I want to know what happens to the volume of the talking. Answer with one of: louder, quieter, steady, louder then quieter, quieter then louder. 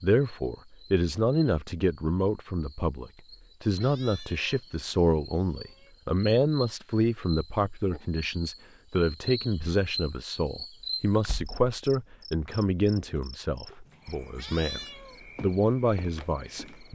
steady.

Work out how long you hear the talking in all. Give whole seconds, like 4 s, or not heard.
17 s.